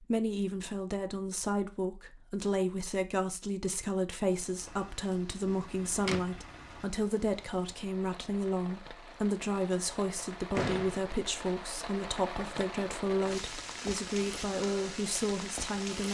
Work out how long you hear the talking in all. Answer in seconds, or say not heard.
16 s.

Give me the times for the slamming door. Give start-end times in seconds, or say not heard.
5.5-6.2, 10.6-11.0.